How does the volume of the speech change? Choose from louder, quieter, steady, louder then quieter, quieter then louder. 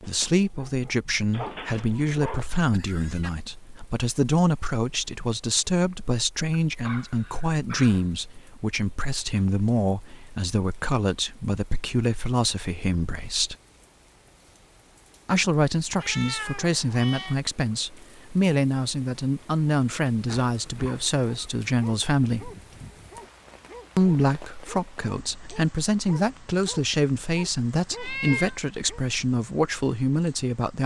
steady.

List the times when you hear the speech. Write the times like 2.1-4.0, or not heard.
0.0-13.6, 15.2-22.5, 23.9-30.8.